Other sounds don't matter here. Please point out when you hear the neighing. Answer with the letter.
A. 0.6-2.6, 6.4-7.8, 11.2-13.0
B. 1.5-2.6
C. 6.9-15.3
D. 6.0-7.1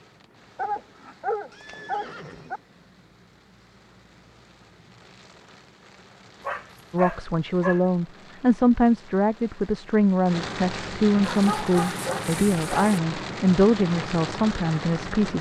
B.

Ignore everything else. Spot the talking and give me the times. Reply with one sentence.
You can hear the talking from 6.9 to 15.3 s.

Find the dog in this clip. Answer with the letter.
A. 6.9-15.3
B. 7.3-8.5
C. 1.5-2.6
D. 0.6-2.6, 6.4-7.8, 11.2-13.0
D.